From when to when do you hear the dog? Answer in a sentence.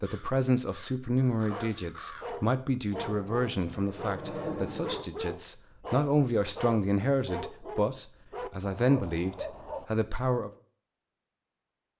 You can hear the dog from 1.4 to 9.8 s.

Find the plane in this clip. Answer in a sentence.
The plane can be heard from 3.0 to 5.0 s.